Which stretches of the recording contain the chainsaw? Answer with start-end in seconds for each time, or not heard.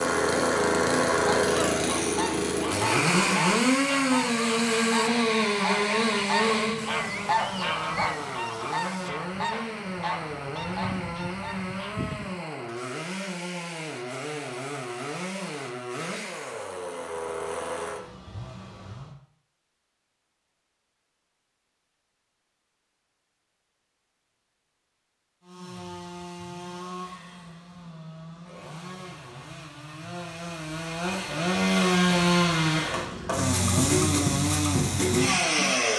0.0-19.1, 25.4-35.9.